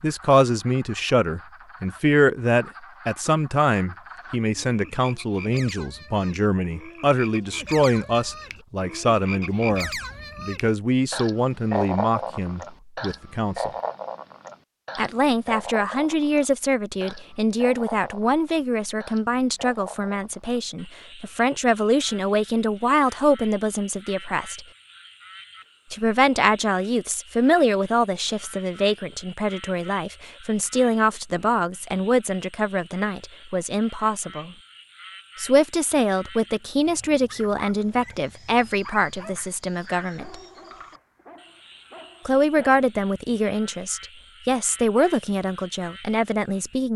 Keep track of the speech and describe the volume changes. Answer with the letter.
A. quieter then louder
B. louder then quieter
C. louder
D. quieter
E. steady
E.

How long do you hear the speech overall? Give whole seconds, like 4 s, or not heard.
42 s.